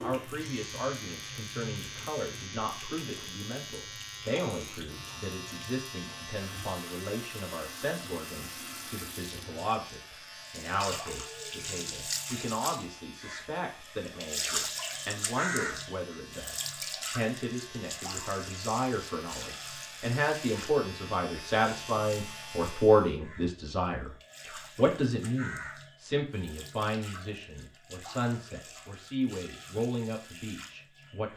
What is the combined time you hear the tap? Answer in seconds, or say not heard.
31 s.